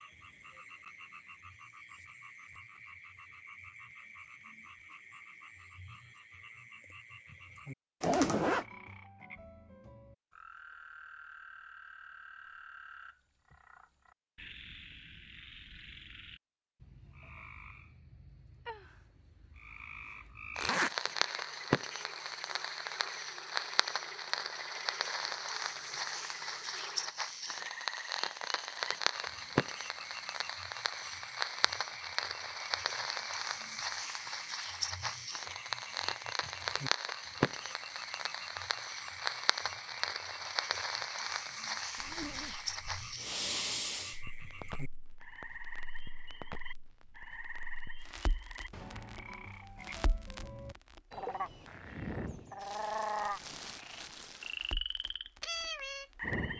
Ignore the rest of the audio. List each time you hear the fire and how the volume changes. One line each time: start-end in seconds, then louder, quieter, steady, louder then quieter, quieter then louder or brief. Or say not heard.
20.6-56.5 quieter.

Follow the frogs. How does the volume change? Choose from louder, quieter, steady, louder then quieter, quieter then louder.
louder.